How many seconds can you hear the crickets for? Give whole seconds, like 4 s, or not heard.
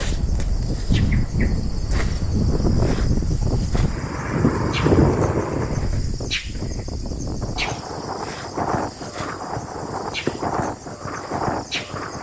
12 s.